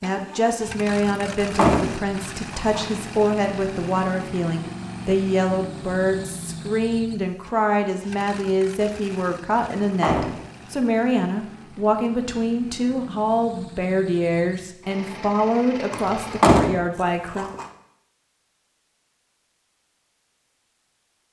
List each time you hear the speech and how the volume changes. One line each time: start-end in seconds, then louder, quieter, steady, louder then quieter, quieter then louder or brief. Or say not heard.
0.0-17.5 steady.